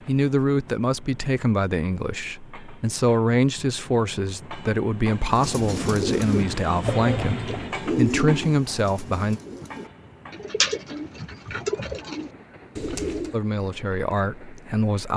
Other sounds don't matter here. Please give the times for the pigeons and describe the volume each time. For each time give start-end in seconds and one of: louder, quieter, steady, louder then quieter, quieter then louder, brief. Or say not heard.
5.2-13.3 quieter then louder.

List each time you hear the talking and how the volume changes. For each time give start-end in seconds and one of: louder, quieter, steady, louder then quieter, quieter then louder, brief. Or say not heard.
0.1-9.4 steady
13.3-15.1 brief.